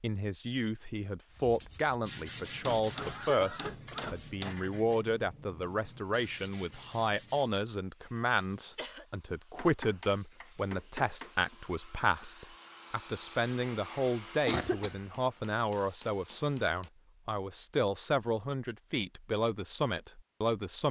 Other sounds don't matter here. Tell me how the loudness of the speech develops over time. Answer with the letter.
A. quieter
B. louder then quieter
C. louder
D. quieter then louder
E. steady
E.